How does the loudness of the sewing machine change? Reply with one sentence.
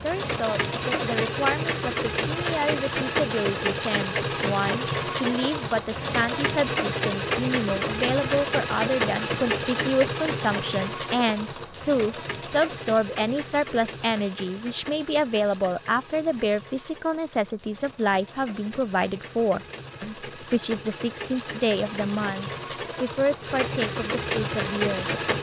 The loudness of the sewing machine goes down, then up.